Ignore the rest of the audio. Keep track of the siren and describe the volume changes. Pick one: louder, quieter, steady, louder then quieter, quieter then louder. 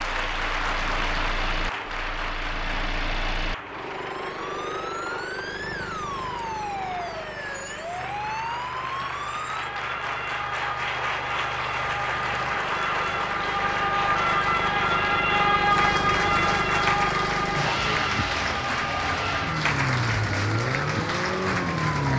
louder then quieter.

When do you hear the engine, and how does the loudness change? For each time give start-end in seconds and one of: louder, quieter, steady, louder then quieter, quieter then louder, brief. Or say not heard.
0.0-22.1 quieter then louder.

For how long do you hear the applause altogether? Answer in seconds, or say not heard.
22 s.